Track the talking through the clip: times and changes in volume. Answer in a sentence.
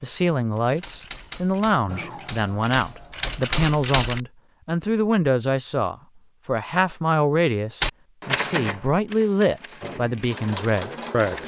The talking can be heard from 0.0 to 11.4 s, at a steady volume.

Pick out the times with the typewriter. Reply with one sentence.
You can hear the typewriter from 0.0 to 4.2 s and from 7.8 to 11.4 s.